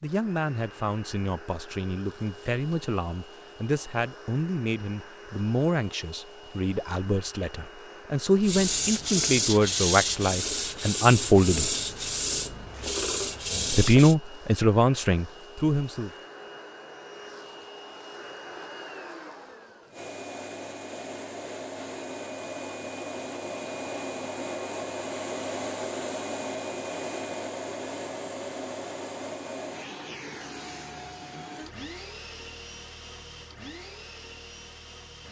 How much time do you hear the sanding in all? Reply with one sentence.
You can hear the sanding for 6 seconds altogether.